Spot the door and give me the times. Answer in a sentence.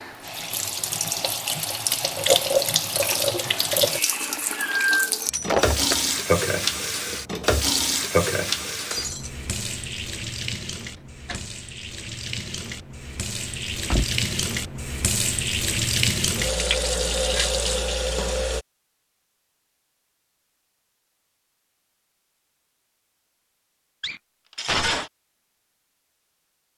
You can hear the door from 10.9 to 11.6 s and from 13.8 to 14.4 s.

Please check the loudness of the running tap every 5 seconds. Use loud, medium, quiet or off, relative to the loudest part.
loud, loud, medium, loud, off, off.